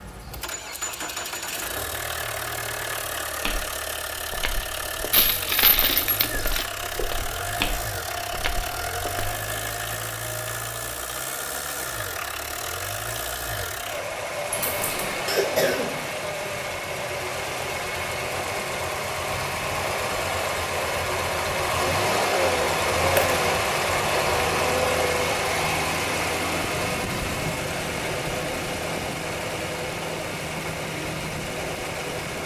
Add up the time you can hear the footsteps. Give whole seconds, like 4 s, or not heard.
6 s.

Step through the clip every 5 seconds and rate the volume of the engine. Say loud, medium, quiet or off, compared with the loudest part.
medium, medium, medium, medium, loud, loud, medium.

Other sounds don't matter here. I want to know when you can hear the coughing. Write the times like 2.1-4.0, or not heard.
15.2-16.1.